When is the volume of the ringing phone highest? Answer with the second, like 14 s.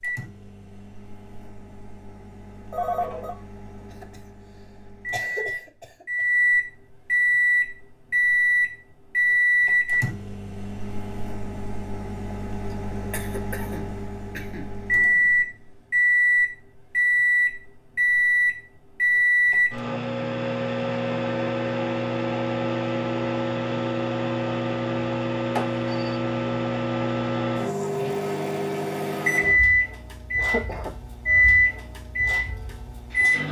3 s.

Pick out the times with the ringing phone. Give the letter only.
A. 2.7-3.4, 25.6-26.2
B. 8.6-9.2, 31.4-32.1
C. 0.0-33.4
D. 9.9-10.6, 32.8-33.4
A.